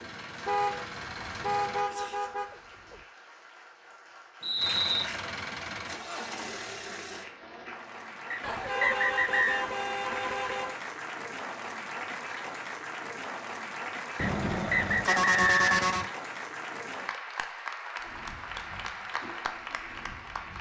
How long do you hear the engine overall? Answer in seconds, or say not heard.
7 s.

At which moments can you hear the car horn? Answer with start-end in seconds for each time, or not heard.
0.5-3.0, 8.4-10.8, 14.2-16.1.